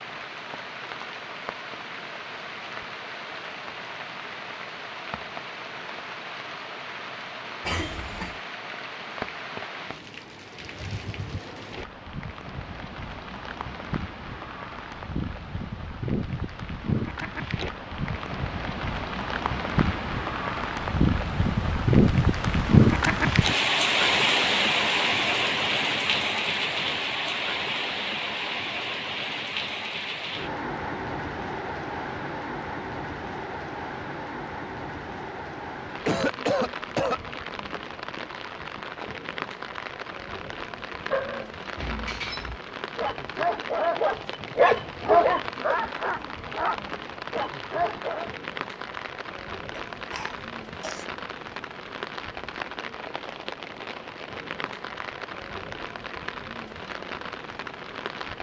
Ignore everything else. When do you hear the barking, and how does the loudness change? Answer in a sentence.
You can hear the barking from 41.0 to 48.3 s, getting louder then quieter.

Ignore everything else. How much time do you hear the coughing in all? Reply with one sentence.
You can hear the coughing for 3 seconds altogether.